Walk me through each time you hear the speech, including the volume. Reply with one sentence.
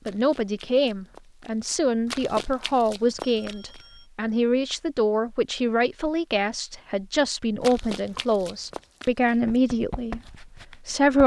You can hear the speech from 0.1 to 11.2 s, at a steady volume.